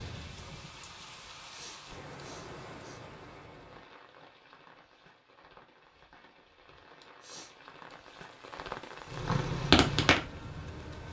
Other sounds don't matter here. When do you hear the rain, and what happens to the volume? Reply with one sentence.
You can hear the rain from 0.0 to 11.0 s, getting quieter then louder.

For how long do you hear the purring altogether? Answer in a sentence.
The purring can be heard for 2 seconds in total.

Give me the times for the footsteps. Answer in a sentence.
The footsteps can't be heard in this clip.